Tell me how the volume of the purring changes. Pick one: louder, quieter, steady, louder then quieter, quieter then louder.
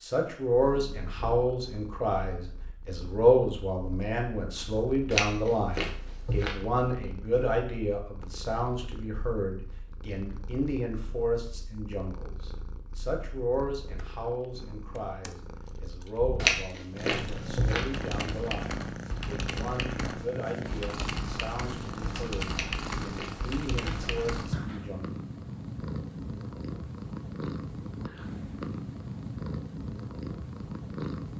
louder.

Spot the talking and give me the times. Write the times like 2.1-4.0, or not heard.
0.0-25.1.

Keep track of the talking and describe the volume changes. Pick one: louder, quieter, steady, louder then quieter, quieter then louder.
quieter.